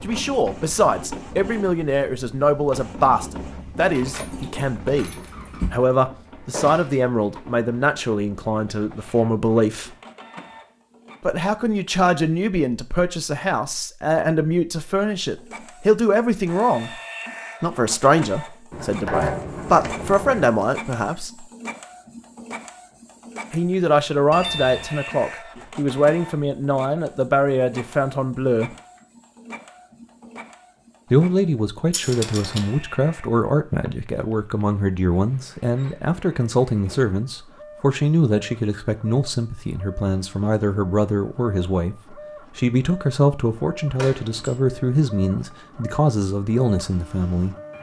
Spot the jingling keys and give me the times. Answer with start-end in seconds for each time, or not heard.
3.9-5.8, 18.7-20.6, 31.9-32.8.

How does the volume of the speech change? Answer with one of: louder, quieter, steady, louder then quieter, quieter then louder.
steady.